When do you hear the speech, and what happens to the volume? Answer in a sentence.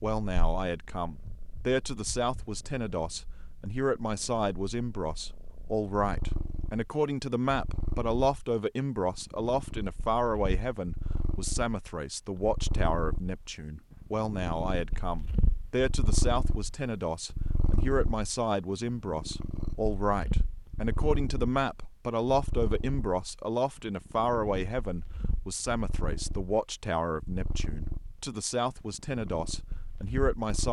You can hear the speech from 0.0 to 30.6 s, at a steady volume.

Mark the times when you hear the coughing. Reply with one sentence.
The coughing can't be heard in this clip.